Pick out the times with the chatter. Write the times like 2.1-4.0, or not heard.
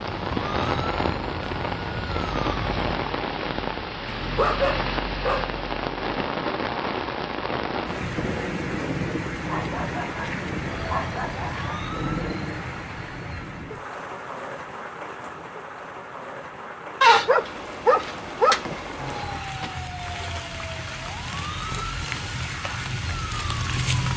not heard.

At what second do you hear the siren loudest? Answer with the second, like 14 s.
24 s.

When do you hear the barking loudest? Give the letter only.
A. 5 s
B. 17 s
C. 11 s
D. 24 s
B.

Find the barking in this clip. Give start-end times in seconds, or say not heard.
4.0-5.6, 9.4-11.8, 17.0-19.7.